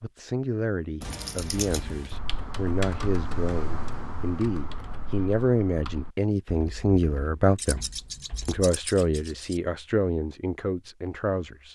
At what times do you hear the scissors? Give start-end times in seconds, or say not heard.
1.0-2.2, 7.5-9.6.